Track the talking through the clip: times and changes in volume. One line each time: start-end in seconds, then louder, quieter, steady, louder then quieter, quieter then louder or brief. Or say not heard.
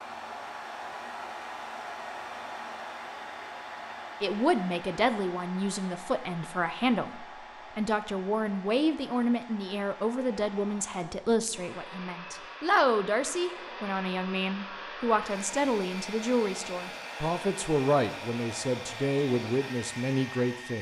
4.2-20.7 steady.